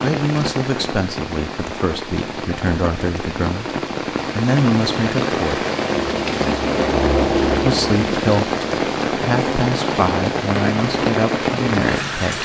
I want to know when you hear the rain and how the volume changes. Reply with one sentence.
The rain can be heard from 0.0 to 12.4 s, getting louder.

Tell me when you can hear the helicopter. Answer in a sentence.
You can hear the helicopter from 6.0 to 8.1 s.